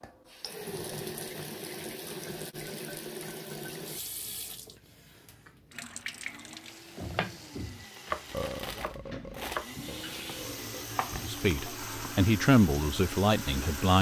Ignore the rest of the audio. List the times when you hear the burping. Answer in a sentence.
You can hear the burping from 8.3 to 10.8 s.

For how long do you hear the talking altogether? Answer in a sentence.
The talking can be heard for 3 seconds in total.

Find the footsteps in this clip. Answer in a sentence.
The footsteps can't be heard in this clip.